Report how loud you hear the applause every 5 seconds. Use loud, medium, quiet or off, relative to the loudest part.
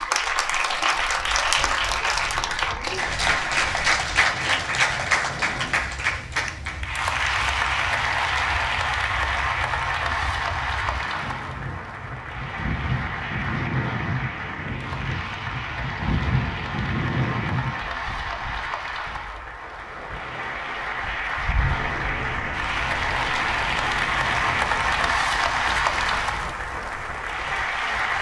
loud, loud, medium, medium, loud, loud.